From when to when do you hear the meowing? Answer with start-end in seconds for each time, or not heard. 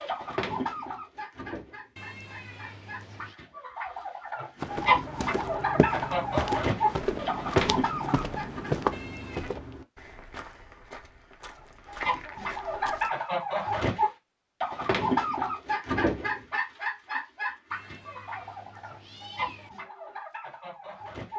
1.9-3.4, 8.9-9.6, 17.7-19.7.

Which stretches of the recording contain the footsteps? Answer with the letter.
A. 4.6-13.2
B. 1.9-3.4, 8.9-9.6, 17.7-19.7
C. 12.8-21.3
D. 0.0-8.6
A.